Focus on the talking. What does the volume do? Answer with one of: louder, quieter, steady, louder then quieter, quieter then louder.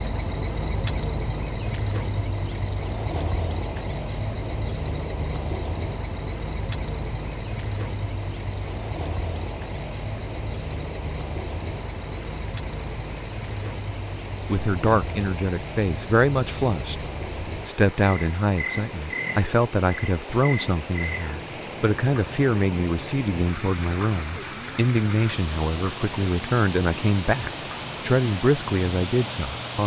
steady.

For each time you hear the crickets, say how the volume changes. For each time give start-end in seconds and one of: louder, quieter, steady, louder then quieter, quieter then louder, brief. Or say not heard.
0.0-29.8 quieter.